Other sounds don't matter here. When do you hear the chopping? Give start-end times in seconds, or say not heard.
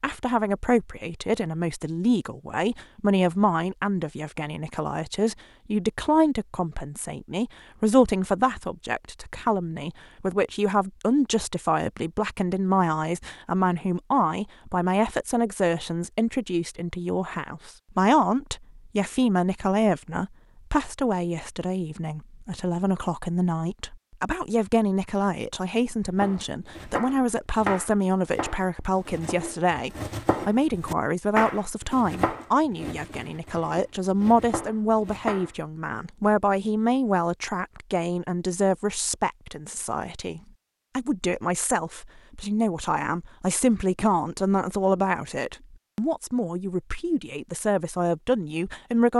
26.2-35.5.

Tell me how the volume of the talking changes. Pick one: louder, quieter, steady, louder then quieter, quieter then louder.
steady.